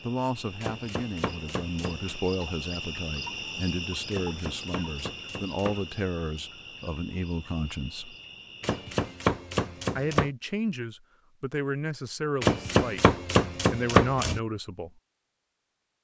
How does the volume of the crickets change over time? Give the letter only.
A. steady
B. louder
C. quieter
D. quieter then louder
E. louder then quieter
E.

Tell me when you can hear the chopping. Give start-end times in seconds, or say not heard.
0.6-2.2, 4.1-5.8, 8.6-10.3, 12.4-14.4.